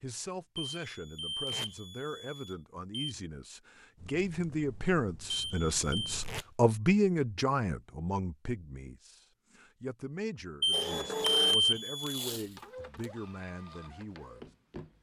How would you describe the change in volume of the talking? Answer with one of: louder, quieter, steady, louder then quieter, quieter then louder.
louder then quieter.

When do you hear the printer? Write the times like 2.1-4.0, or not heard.
10.7-14.9.